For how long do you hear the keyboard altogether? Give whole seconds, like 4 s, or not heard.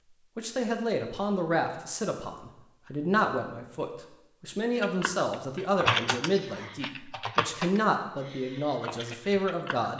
5 s.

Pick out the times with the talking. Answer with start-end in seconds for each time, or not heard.
0.3-9.9.